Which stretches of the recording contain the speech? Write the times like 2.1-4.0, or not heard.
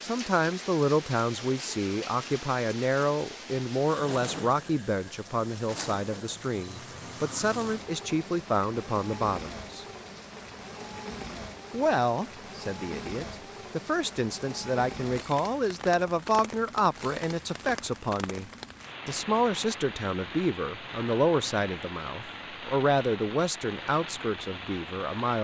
0.0-9.8, 11.7-25.3.